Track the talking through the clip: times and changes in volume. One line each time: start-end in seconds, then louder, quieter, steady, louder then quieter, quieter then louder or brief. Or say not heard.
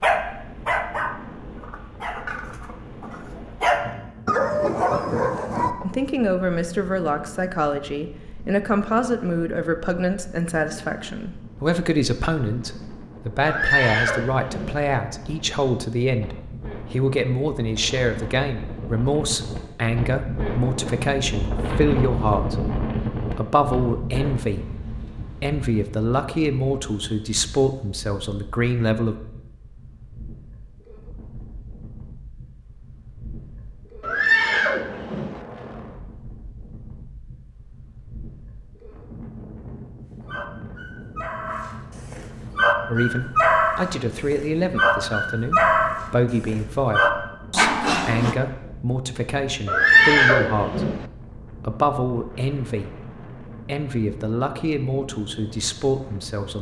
5.8-29.1 steady
42.9-56.5 steady.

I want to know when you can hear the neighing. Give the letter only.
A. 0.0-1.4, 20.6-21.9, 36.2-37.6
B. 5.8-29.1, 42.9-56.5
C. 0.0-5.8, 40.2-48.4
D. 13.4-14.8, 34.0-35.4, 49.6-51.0
D.